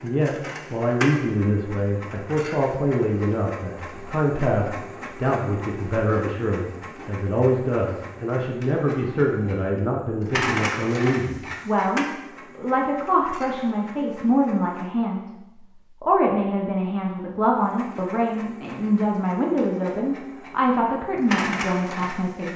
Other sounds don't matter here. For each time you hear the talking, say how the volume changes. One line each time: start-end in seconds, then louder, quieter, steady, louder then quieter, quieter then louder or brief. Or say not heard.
0.0-22.5 steady.